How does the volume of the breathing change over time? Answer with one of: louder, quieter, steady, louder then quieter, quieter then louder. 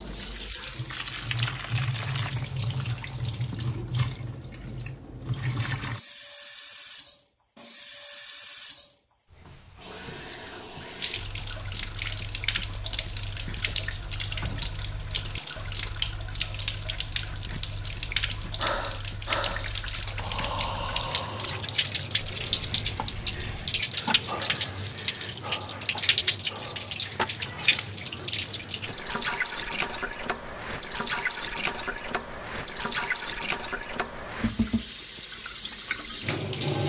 quieter.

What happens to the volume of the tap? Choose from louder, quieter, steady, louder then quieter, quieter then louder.
steady.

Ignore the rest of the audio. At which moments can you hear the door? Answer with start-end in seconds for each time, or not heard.
14.3-15.2.